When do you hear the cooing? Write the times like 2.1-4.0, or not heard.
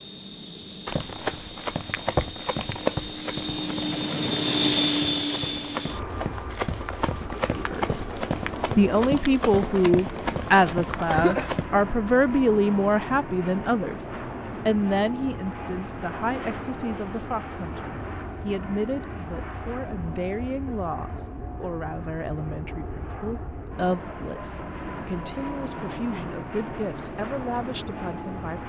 not heard.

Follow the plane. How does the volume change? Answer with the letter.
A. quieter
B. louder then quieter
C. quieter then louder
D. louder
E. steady
A.